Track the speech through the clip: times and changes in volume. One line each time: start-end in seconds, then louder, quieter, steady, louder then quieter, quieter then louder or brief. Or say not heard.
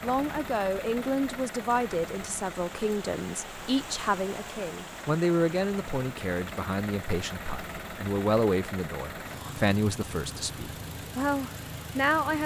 0.0-12.4 steady.